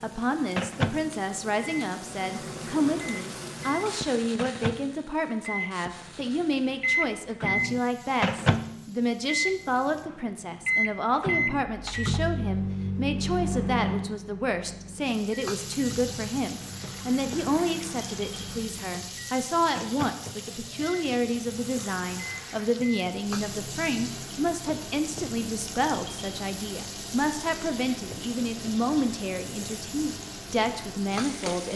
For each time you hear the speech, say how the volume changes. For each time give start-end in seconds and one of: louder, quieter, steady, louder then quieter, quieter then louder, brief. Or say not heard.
0.0-31.7 steady.